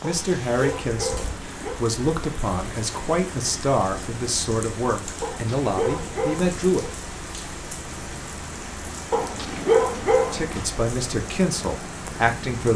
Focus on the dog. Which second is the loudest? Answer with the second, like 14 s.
10 s.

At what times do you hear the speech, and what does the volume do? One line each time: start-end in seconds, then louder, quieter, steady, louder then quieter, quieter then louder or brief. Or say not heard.
0.0-6.8 steady
10.3-12.7 brief.